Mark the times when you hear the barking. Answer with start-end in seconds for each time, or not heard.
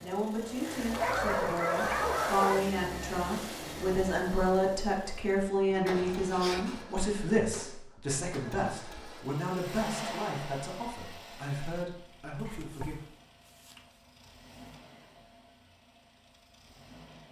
0.9-2.6, 12.6-15.1.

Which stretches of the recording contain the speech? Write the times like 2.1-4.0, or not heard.
0.0-12.9.